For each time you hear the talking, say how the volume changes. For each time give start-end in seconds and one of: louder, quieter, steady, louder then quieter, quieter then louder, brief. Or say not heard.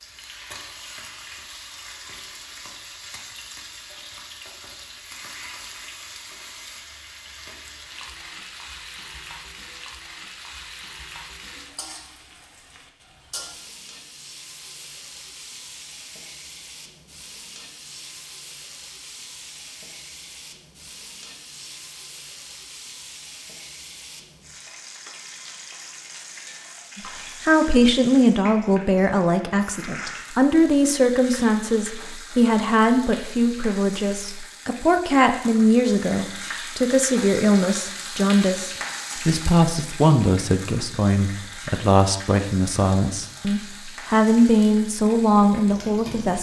26.9-46.3 steady.